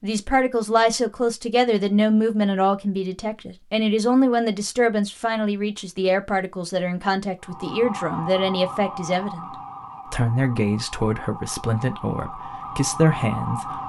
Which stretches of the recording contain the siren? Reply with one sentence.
The siren can be heard from 7.4 to 13.8 s.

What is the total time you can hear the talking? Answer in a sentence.
You can hear the talking for 13 seconds altogether.